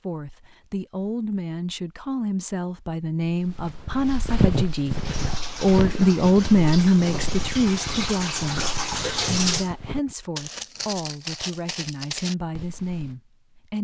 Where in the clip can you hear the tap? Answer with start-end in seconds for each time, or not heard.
4.9-9.7.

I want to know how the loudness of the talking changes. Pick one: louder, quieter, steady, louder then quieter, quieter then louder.
louder then quieter.